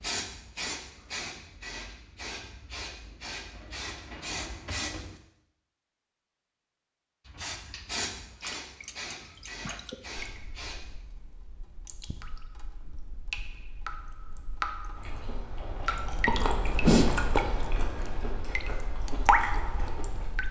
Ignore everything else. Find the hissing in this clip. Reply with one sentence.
You can hear the hissing from 0.0 to 5.1 s and from 7.2 to 10.9 s.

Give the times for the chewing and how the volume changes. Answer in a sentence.
You can hear the chewing from 14.9 to 20.3 s, getting louder then quieter.